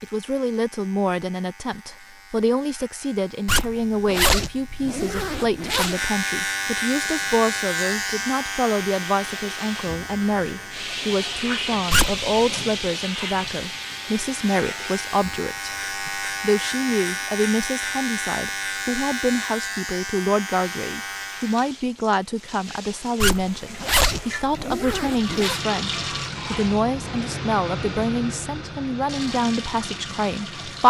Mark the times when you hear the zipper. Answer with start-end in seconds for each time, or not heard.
3.5-6.0, 11.9-12.6, 23.2-25.6.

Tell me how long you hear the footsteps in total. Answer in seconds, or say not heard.
not heard.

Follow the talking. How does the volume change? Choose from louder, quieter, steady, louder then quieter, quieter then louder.
steady.